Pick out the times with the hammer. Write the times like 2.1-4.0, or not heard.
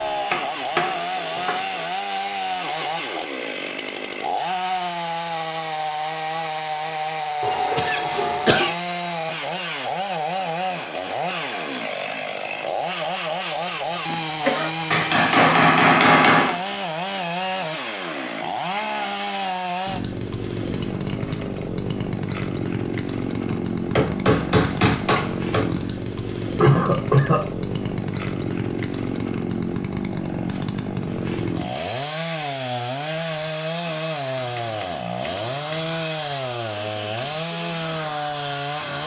0.3-1.7, 14.9-16.6, 23.5-25.6, 34.4-36.0.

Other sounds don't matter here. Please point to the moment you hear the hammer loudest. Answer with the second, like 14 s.
16 s.